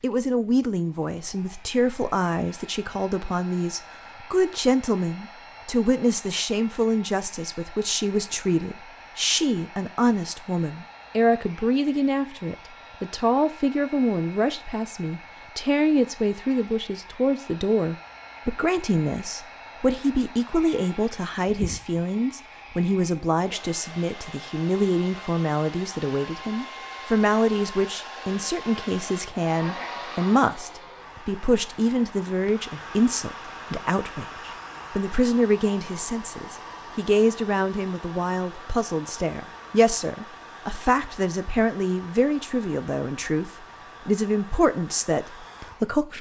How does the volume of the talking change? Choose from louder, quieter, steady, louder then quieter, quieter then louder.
steady.